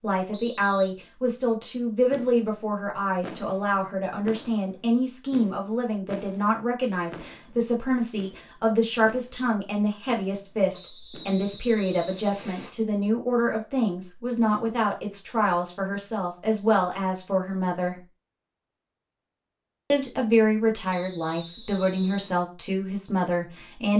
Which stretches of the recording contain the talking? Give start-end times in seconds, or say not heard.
0.0-17.9, 19.9-23.9.